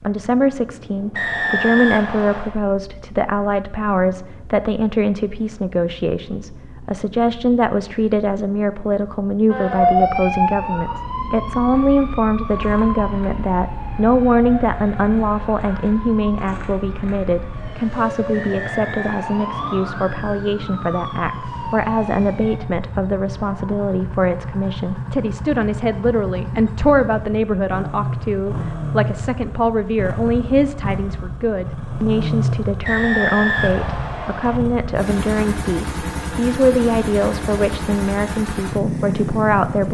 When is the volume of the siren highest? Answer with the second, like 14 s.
10 s.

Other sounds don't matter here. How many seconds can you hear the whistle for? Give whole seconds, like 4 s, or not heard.
5 s.